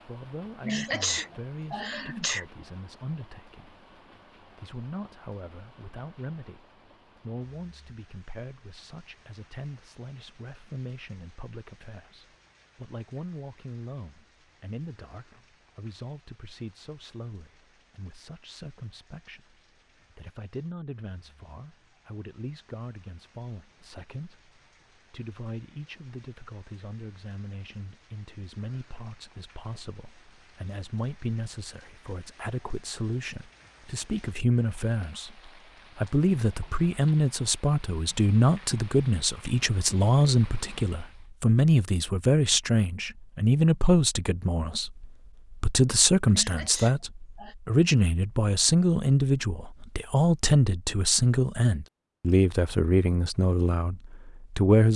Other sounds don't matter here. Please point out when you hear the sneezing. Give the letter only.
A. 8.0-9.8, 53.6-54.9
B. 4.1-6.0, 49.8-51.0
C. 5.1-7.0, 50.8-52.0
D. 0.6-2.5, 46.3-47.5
D.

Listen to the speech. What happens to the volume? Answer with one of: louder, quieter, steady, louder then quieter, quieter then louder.
louder.